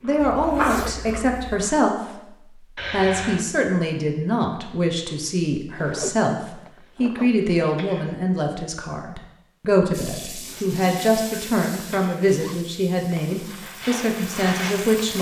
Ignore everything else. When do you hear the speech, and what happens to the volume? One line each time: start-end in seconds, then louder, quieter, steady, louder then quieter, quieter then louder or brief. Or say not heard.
0.0-15.1 steady.